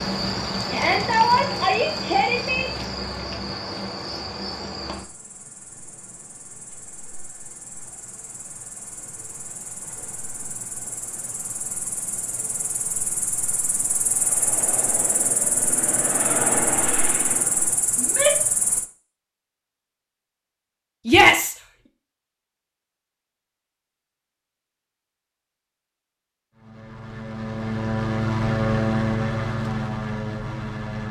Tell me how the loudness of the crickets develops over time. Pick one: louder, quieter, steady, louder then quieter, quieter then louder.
quieter then louder.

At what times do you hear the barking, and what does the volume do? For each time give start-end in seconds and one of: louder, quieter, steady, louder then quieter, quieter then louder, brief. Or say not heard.
not heard.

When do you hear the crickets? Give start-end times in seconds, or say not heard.
0.0-18.9.